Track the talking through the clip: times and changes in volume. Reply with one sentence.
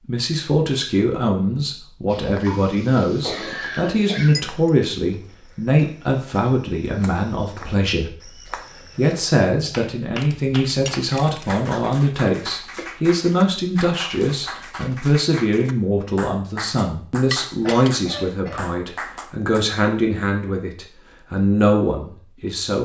You can hear the talking from 0.1 to 22.8 s, at a steady volume.